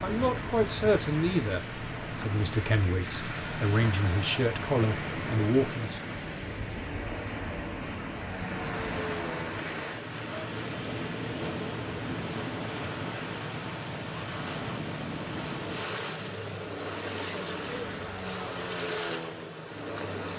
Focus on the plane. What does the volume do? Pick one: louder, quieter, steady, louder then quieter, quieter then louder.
steady.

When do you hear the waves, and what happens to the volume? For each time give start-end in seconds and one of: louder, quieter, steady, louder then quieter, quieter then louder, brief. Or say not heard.
0.0-20.3 steady.